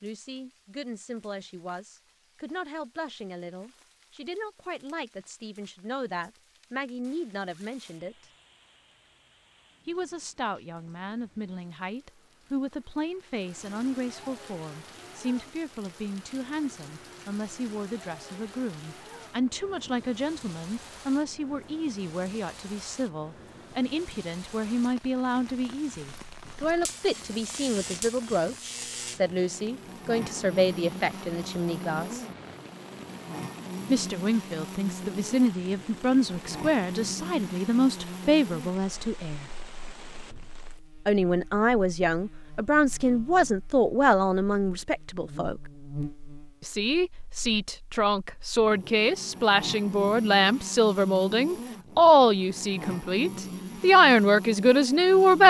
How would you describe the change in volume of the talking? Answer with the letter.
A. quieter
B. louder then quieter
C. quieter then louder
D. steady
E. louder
E.